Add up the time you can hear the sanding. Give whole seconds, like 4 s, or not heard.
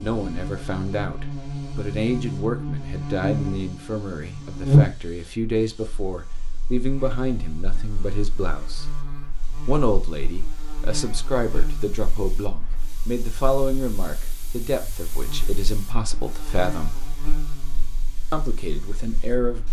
not heard.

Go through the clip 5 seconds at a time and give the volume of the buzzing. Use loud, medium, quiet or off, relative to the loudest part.
loud, quiet, quiet, quiet.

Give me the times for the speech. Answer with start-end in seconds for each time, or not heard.
0.0-8.8, 9.7-16.9, 18.3-19.6.